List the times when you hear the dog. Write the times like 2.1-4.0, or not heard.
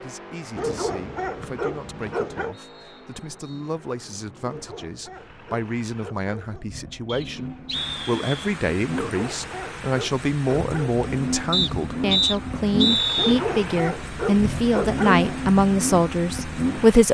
0.6-2.5, 4.4-6.7, 8.9-11.0, 13.2-15.4.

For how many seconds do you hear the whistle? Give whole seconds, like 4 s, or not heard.
6 s.